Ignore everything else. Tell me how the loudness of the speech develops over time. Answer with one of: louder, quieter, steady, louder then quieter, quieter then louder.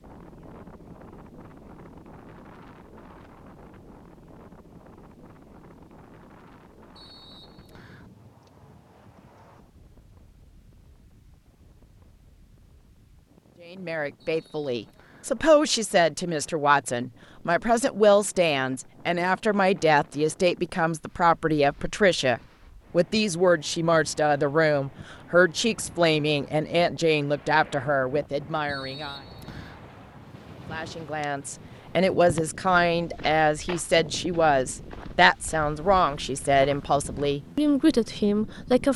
steady.